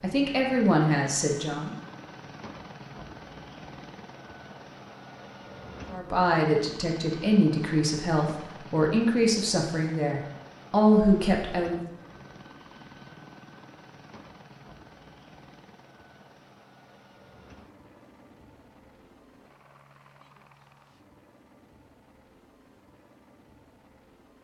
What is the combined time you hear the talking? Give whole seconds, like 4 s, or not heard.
8 s.